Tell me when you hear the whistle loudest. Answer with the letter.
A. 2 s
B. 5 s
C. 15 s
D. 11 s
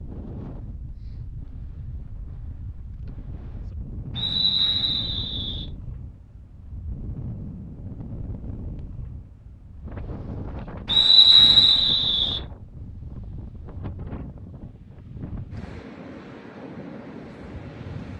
D.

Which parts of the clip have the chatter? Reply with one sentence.
The chatter can't be heard in this clip.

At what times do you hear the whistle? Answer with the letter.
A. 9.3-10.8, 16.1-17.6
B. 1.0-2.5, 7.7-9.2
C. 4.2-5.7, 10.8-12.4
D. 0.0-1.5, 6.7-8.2
C.